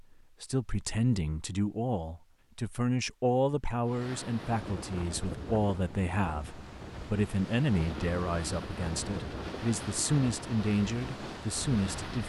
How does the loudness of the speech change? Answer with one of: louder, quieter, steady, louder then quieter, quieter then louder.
steady.